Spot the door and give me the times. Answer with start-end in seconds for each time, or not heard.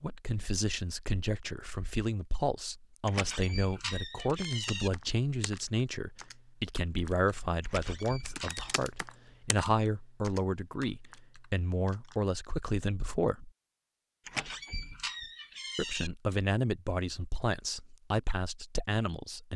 3.0-4.9, 7.6-8.8, 14.2-16.1.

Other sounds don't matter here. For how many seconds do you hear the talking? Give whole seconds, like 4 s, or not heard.
17 s.